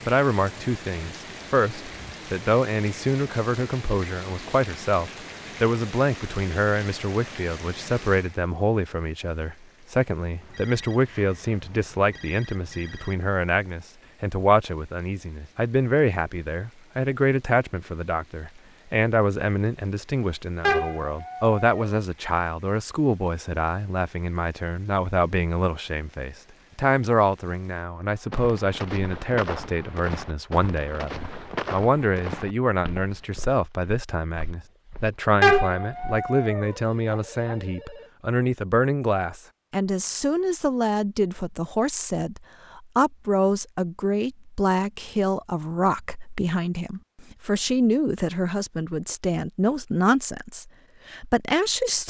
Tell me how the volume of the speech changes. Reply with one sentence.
The loudness of the speech stays about the same.